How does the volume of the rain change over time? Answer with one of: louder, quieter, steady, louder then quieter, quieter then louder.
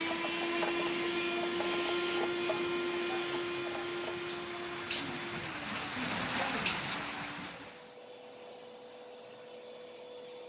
louder.